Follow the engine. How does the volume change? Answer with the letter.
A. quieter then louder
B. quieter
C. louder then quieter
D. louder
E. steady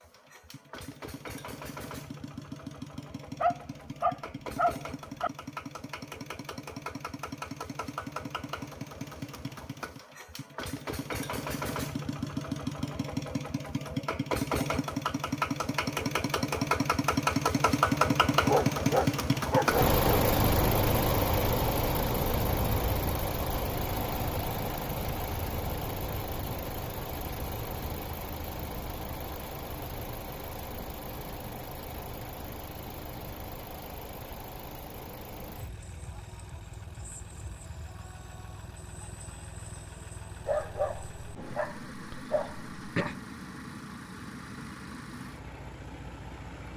C.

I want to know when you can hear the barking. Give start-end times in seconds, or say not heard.
3.4-5.3, 18.4-20.0, 40.5-43.1.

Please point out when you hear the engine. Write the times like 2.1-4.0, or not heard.
0.0-46.7.